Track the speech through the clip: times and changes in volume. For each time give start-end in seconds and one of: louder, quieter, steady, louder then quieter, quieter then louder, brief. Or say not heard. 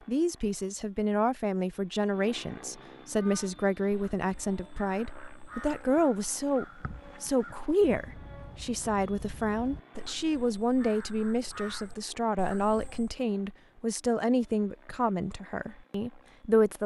0.1-16.8 steady.